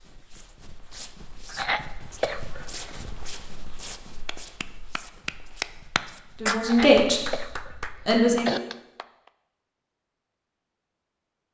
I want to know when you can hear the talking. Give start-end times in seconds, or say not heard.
6.4-8.6.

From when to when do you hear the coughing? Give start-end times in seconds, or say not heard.
1.5-3.0, 6.6-8.6.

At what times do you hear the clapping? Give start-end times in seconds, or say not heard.
4.2-9.3.